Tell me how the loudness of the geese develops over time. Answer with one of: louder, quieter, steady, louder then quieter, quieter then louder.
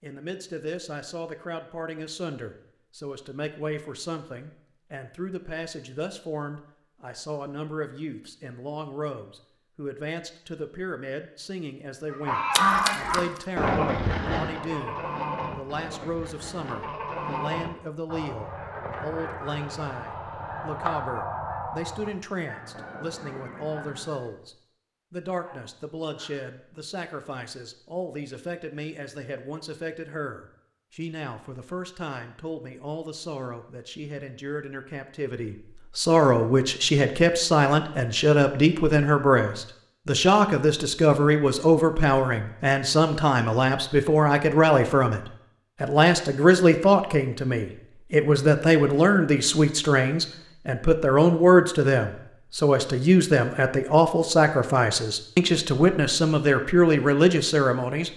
quieter.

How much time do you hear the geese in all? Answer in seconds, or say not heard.
12 s.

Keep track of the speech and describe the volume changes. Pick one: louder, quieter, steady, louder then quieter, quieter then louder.
louder.